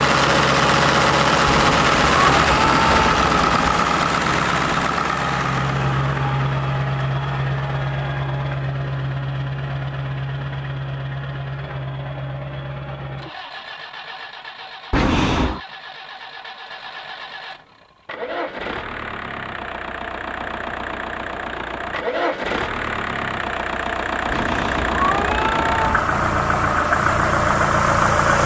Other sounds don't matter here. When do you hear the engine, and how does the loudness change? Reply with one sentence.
The engine can be heard from 0.0 to 28.4 s, getting quieter then louder.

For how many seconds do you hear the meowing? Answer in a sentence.
You can hear the meowing for 5 seconds altogether.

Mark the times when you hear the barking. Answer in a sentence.
You can't hear the barking here.